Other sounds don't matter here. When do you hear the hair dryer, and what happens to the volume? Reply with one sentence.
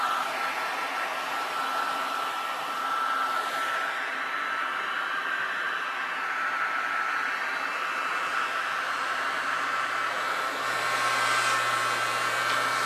You can hear the hair dryer from 0.0 to 12.8 s, at a steady volume.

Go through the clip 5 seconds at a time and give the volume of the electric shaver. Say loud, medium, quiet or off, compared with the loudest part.
off, medium, loud.